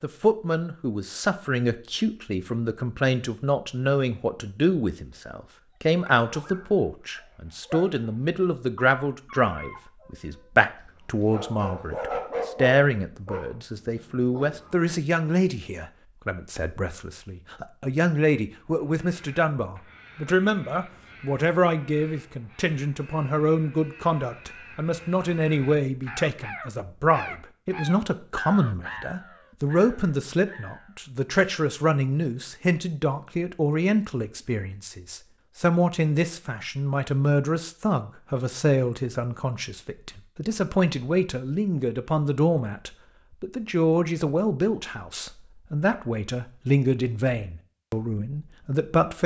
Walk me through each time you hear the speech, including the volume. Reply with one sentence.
The speech can be heard from 0.0 to 49.2 s, at a steady volume.